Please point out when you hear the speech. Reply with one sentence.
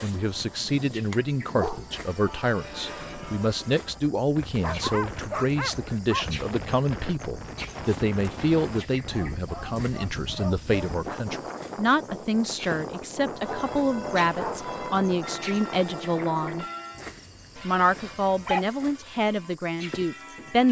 The speech can be heard from 0.0 to 16.6 s and from 17.6 to 20.6 s.